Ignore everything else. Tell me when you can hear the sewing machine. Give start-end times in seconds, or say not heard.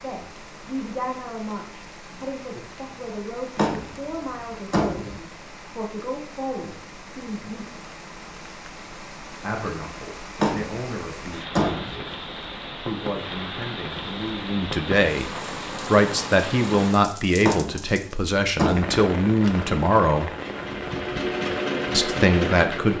19.4-22.9.